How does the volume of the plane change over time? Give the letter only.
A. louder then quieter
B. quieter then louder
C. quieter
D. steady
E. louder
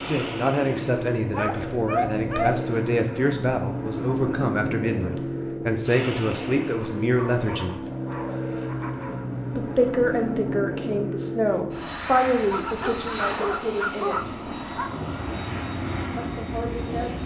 D.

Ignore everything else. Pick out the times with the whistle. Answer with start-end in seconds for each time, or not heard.
not heard.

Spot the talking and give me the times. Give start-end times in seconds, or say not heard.
0.1-7.8, 9.6-14.3, 16.1-17.1.